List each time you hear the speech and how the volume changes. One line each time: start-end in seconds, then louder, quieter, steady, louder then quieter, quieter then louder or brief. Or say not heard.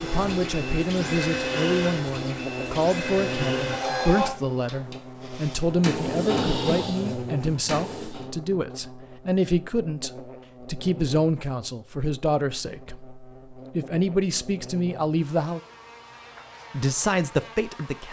0.0-15.6 steady
16.7-18.0 brief.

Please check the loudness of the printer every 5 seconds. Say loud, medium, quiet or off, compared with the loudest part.
loud, loud, off, off.